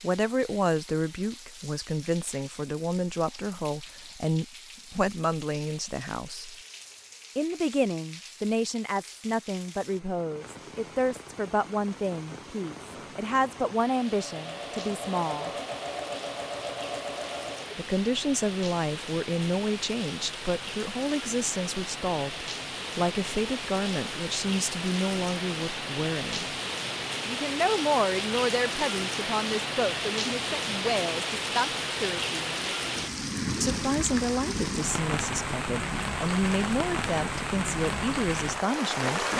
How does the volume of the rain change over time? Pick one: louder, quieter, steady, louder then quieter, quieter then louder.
louder.